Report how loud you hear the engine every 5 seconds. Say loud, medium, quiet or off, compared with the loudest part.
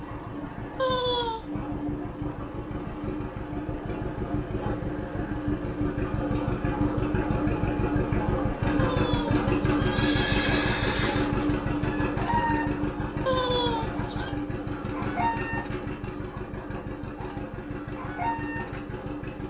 medium, loud, loud, medium.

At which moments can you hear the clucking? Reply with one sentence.
You can hear the clucking from 10.2 to 18.9 s.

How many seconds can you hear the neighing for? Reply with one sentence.
The neighing can be heard for 4 seconds in total.